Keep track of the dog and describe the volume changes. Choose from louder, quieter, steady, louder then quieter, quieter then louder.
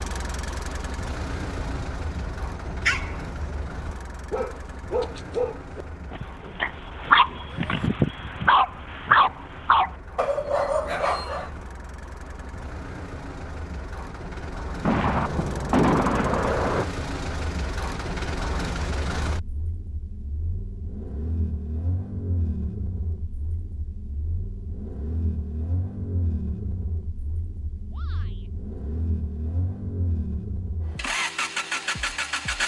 louder.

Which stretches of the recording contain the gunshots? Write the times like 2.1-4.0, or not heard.
14.8-16.9.